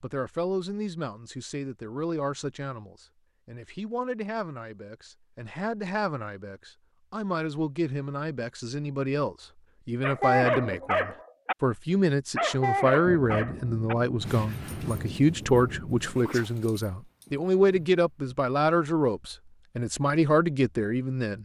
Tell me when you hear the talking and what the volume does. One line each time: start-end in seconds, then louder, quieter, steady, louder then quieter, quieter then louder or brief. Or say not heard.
0.0-21.3 louder.